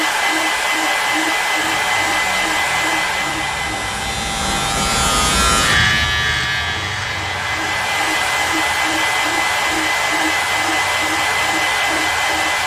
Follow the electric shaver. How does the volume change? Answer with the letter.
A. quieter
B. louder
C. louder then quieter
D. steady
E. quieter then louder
C.